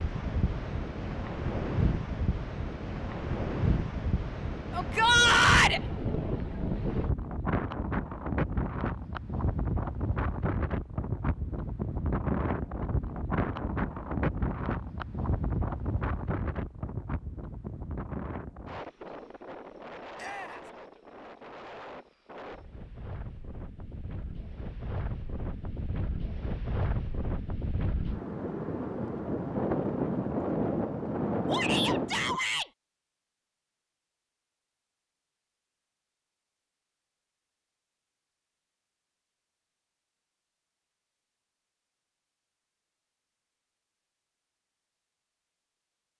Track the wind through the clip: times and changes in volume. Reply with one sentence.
You can hear the wind from 0.0 to 32.4 s, getting quieter then louder.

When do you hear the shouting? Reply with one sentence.
You can hear the shouting from 4.7 to 5.8 s, from 20.1 to 20.7 s and from 31.4 to 32.7 s.